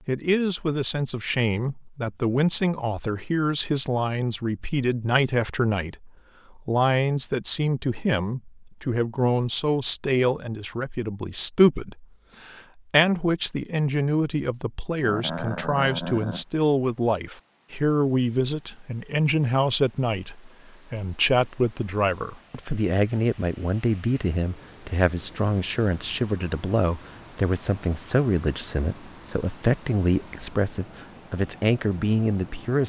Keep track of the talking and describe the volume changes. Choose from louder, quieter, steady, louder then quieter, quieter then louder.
steady.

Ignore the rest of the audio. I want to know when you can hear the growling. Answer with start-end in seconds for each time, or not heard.
15.0-16.4.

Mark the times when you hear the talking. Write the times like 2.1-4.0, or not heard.
0.1-32.8.